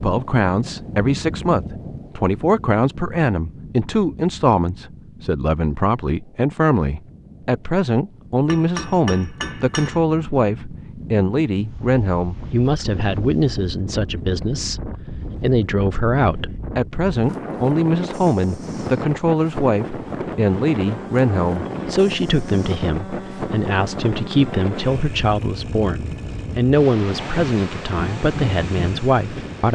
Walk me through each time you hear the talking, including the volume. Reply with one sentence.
The talking can be heard from 0.0 to 29.6 s, at a steady volume.